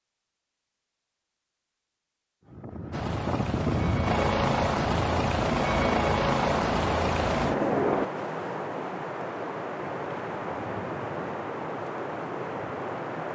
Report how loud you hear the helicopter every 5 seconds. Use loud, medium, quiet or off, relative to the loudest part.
loud, loud, off.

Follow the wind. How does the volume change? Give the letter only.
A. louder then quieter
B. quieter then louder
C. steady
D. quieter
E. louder
C.